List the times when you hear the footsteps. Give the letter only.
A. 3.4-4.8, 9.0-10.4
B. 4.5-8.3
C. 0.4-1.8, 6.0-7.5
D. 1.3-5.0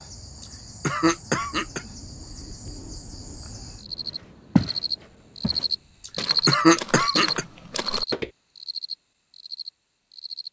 B.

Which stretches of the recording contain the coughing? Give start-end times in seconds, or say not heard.
0.4-1.8, 6.0-7.5.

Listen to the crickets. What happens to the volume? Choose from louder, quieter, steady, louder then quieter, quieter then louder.
louder then quieter.